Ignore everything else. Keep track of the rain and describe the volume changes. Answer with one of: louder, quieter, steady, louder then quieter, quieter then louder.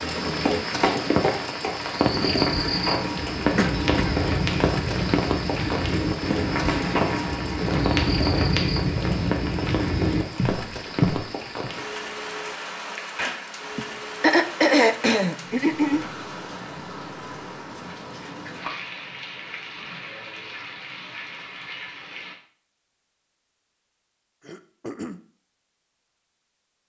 quieter.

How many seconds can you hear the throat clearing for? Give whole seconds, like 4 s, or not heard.
4 s.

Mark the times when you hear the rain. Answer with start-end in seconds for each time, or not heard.
0.0-22.4.